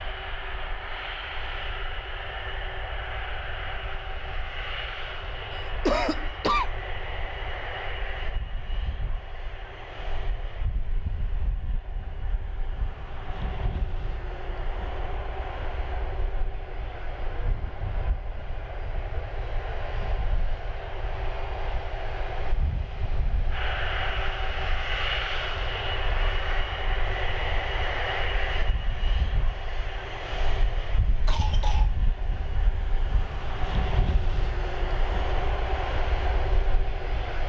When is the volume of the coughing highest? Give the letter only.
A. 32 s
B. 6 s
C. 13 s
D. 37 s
B.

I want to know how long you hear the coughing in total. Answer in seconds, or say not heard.
2 s.